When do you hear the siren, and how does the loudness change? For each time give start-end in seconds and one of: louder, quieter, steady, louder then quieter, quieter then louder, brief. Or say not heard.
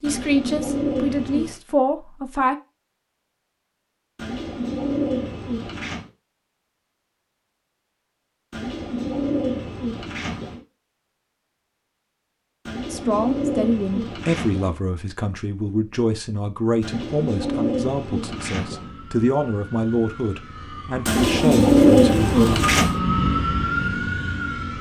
18.6-24.7 louder.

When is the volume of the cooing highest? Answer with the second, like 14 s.
22 s.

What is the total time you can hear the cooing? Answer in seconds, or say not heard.
12 s.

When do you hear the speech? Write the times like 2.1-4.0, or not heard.
0.0-2.5, 12.9-22.6.